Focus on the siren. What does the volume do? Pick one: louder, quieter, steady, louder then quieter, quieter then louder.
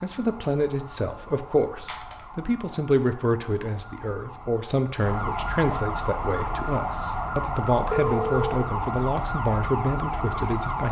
louder.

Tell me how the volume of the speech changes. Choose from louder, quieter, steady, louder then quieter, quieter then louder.
steady.